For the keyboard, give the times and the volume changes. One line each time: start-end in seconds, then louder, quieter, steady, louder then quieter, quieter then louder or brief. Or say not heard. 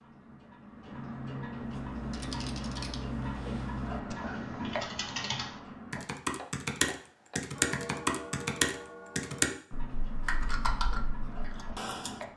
1.7-12.2 louder then quieter.